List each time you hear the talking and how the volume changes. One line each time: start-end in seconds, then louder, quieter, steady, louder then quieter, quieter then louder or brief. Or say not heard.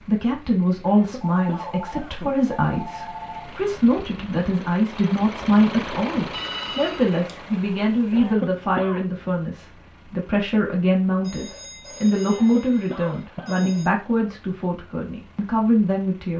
0.0-16.3 steady.